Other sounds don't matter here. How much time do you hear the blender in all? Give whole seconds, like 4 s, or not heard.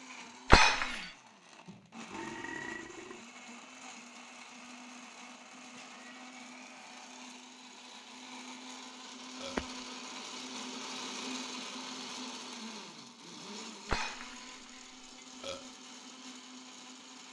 17 s.